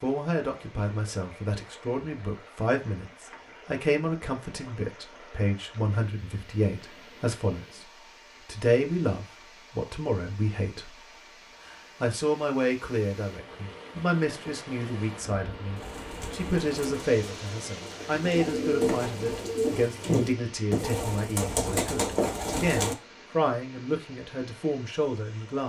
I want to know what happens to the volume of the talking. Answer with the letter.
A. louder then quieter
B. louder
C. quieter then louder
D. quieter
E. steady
E.